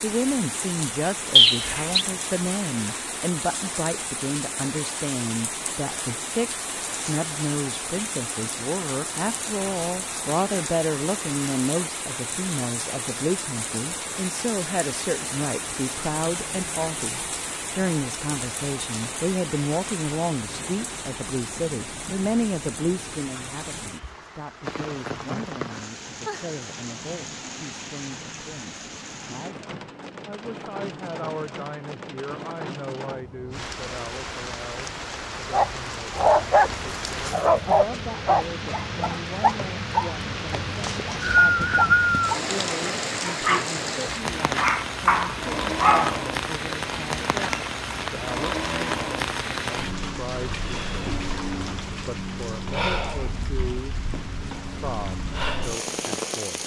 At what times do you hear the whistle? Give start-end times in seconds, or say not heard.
1.4-2.0, 40.8-42.4.